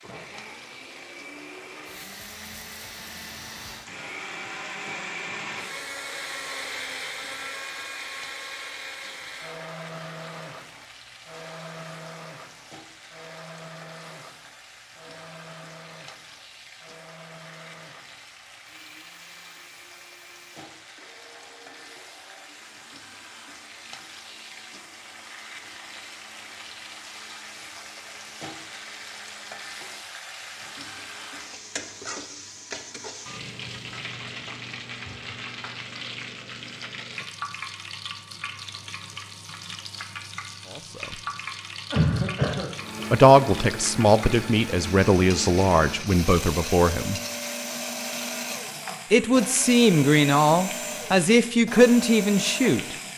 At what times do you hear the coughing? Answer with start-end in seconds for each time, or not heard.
41.9-42.7.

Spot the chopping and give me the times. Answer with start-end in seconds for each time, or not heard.
not heard.